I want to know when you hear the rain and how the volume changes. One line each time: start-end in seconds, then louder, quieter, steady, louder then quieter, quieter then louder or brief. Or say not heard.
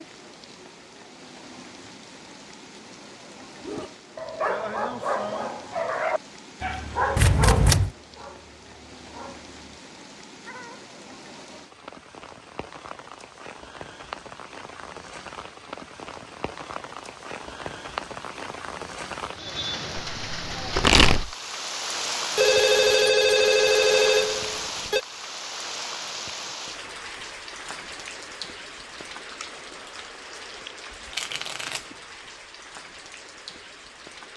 0.0-34.3 louder then quieter.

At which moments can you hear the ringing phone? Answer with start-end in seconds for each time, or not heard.
22.4-25.0.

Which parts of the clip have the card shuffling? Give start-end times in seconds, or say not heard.
7.2-7.9, 20.1-21.4, 31.1-31.9.